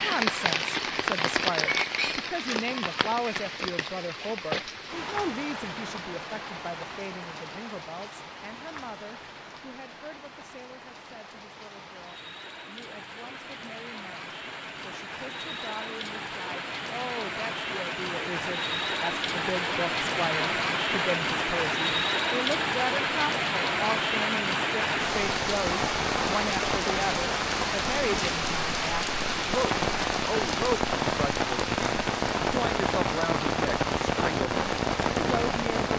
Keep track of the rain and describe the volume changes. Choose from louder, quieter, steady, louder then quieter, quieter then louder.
quieter then louder.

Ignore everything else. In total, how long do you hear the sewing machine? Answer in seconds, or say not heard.
not heard.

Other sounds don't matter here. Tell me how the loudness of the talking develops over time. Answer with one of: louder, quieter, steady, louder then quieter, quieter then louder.
quieter then louder.